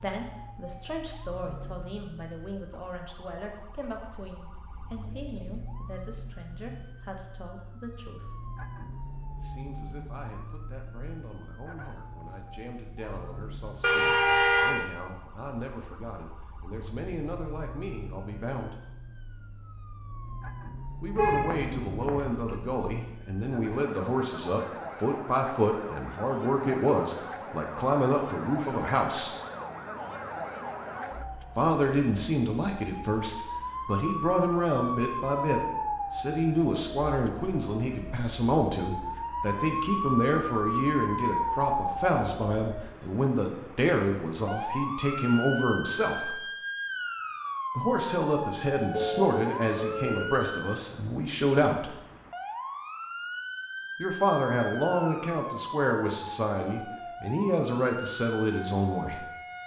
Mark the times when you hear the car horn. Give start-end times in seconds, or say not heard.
13.8-14.8, 21.1-22.6, 48.9-50.2.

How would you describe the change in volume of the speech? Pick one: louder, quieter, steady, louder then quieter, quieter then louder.
louder.